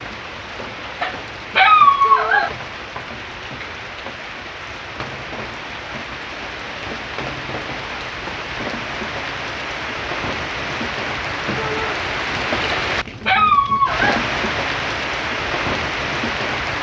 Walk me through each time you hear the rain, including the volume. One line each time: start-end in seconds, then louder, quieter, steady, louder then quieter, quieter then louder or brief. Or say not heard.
0.0-16.7 louder.